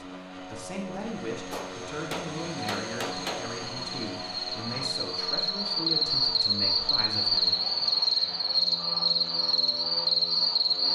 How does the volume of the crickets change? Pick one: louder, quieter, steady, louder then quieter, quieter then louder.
louder.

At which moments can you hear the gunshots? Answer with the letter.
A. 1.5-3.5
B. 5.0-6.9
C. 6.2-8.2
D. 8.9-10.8
A.